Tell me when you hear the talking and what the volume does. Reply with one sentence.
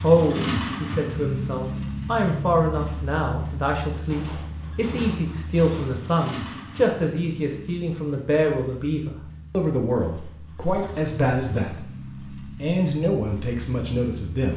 You can hear the talking from 0.0 to 14.5 s, at a steady volume.